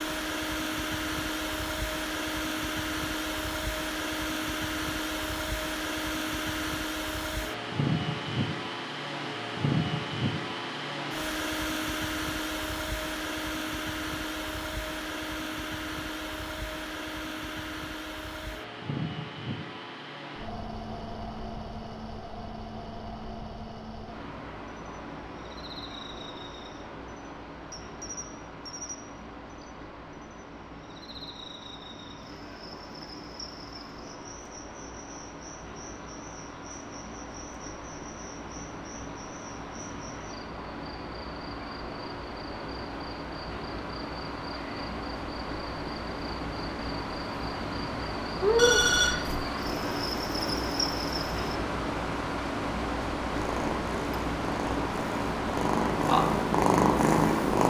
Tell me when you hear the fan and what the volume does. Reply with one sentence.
The fan can be heard from 0.0 to 57.6 s, getting quieter then louder.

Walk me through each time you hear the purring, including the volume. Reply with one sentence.
The purring can be heard from 53.3 to 57.6 s, getting louder.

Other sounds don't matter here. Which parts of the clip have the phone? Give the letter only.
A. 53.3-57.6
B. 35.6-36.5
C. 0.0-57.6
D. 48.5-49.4
D.